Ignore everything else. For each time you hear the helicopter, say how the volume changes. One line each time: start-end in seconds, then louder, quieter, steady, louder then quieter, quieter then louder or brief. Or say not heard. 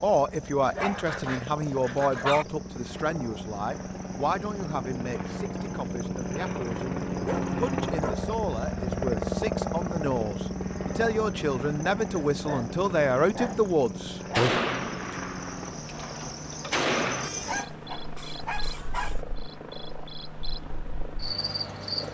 0.0-22.0 louder then quieter.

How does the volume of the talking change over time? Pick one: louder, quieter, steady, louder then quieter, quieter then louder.
quieter then louder.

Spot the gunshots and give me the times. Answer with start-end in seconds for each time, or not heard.
14.3-17.3.